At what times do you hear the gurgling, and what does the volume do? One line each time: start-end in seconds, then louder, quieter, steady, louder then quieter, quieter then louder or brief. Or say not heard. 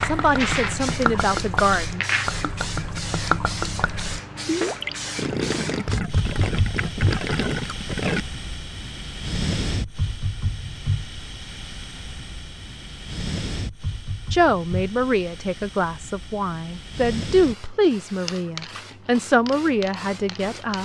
0.0-8.2 steady.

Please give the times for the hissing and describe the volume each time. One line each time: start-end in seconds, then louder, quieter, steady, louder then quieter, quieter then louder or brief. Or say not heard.
0.0-20.8 quieter.